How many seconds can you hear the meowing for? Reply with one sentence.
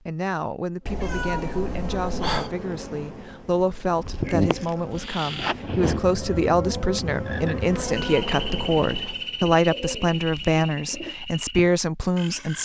The meowing can be heard for 3 seconds in total.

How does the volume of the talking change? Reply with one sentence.
The volume of the talking goes up.